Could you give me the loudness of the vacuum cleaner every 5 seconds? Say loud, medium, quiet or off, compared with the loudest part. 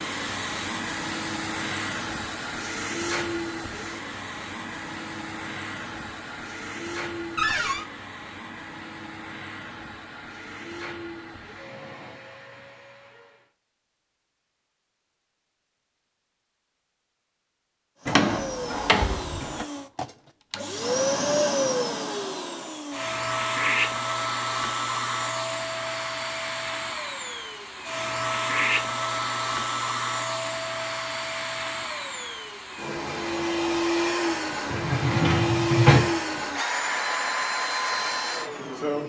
medium, medium, quiet, medium, loud, loud, loud, loud.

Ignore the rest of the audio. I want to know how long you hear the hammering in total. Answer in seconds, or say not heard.
not heard.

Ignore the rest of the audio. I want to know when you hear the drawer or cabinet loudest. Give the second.
36 s.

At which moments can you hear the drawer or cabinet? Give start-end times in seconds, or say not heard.
7.3-7.8, 18.1-19.6, 34.7-36.1.